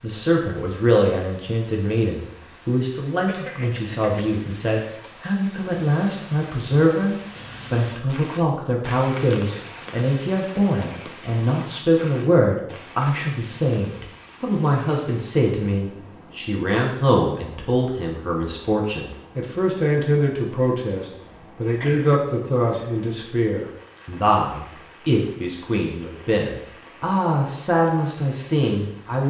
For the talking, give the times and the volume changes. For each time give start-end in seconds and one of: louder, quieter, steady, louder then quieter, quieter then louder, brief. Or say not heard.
0.0-29.2 steady.